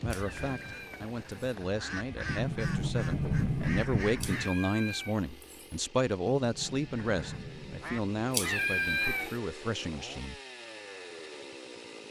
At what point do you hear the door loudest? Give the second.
3 s.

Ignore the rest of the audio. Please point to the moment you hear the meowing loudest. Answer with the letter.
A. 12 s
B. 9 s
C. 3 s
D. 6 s
B.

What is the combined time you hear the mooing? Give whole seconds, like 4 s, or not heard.
not heard.